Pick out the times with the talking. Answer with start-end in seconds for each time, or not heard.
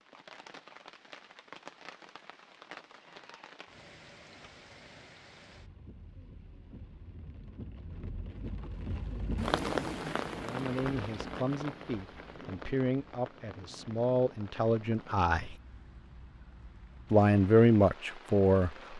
10.4-15.6, 17.1-18.7.